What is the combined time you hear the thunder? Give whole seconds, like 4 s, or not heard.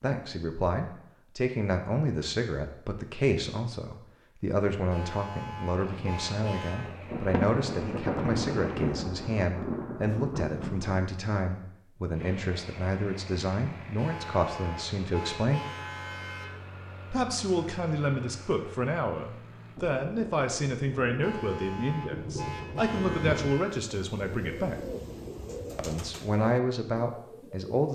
8 s.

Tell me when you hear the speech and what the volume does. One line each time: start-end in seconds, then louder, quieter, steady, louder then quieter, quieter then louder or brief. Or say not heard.
0.0-15.6 steady
17.1-24.8 steady
25.8-27.9 brief.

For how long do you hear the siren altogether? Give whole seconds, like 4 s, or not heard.
not heard.